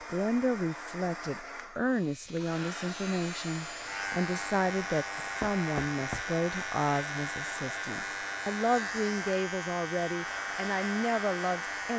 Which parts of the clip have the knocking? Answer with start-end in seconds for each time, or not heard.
5.4-6.2.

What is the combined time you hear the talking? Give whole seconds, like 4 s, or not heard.
12 s.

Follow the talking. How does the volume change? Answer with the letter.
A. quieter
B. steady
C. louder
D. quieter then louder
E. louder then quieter
B.